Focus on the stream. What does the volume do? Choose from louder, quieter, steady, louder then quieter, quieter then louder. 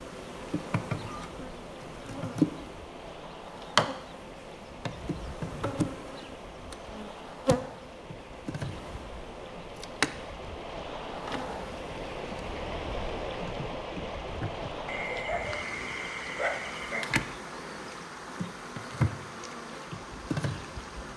louder then quieter.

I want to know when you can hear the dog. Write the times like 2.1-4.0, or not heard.
14.8-17.1.